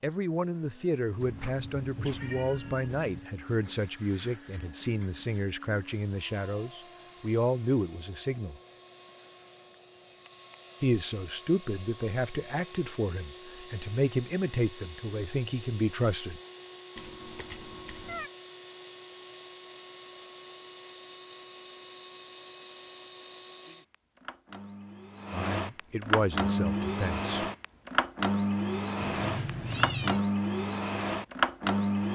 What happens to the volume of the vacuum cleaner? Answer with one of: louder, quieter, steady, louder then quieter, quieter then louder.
louder.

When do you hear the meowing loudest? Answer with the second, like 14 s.
30 s.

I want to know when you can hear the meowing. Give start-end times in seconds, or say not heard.
1.2-3.2, 16.9-18.3, 28.9-30.2.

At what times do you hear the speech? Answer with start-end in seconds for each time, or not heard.
0.0-8.6, 10.8-16.4, 25.3-27.4.